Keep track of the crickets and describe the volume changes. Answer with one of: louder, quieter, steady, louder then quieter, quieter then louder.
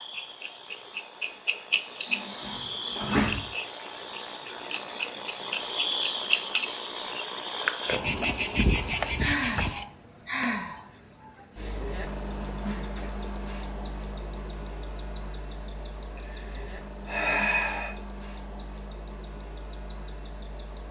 louder then quieter.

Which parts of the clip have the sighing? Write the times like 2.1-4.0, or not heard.
2.0-3.5, 9.2-10.8, 16.1-17.9.